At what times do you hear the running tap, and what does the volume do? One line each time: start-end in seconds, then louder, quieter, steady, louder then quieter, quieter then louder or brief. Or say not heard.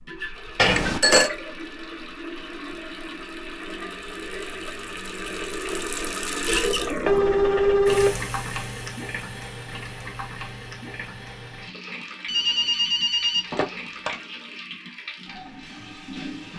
0.0-16.5 louder then quieter.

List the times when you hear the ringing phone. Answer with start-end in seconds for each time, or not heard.
0.6-1.3, 7.0-8.2, 12.2-14.2.